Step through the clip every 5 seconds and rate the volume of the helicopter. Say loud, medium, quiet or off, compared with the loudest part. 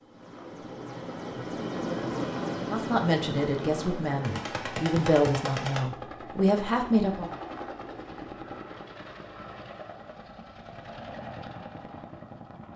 loud, medium, medium.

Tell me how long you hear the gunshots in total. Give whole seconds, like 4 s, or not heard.
2 s.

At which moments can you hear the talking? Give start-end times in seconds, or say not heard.
2.6-7.3.